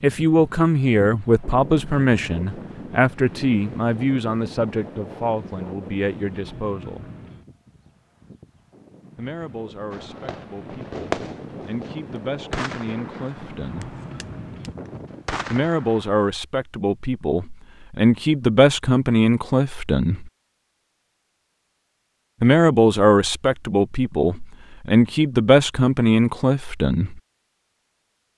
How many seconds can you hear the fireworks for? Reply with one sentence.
The fireworks can be heard for 6 seconds in total.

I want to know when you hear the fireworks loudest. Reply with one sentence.
The volume of the fireworks peaks at 11 seconds.